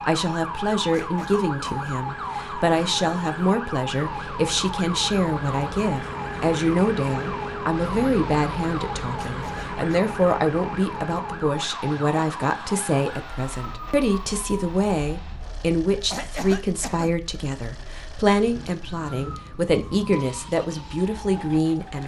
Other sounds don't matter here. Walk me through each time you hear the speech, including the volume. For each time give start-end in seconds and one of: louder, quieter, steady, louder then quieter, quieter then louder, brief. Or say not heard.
0.1-22.0 steady.